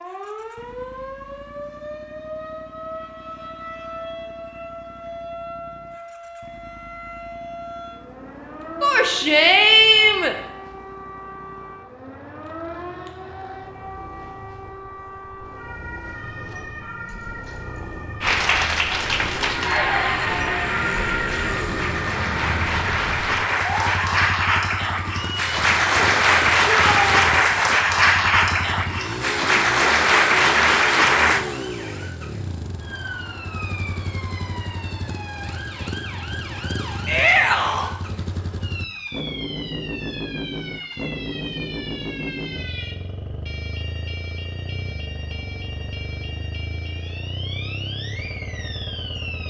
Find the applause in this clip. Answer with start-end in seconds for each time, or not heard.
18.2-31.4.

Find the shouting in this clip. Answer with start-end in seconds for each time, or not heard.
8.8-10.3, 26.6-27.2, 37.0-37.9.